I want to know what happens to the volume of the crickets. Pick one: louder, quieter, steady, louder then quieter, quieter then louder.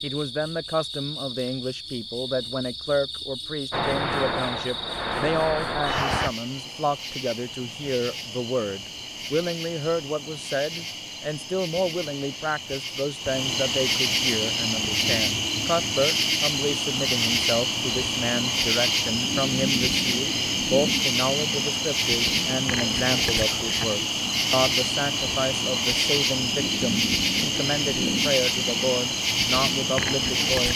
louder.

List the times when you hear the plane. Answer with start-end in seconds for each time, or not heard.
3.7-6.3.